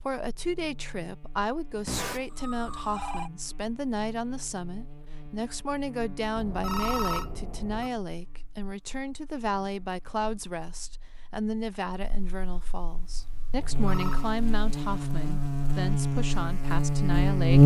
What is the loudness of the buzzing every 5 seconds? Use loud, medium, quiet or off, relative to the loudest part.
quiet, quiet, quiet, loud.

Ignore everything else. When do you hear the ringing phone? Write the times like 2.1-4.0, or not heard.
1.9-3.3, 6.3-7.9, 13.6-14.3.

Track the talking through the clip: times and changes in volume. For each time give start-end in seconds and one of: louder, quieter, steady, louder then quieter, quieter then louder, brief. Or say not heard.
0.0-17.6 steady.